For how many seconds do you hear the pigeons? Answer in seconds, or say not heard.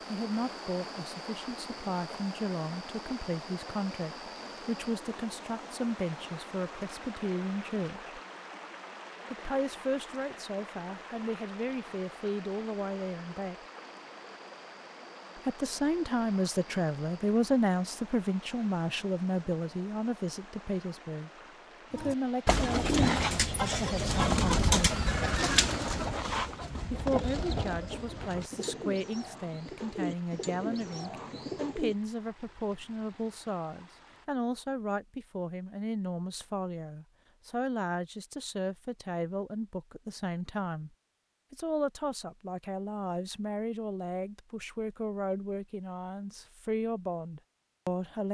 10 s.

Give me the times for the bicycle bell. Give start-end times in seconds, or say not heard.
not heard.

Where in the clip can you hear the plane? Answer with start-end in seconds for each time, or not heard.
not heard.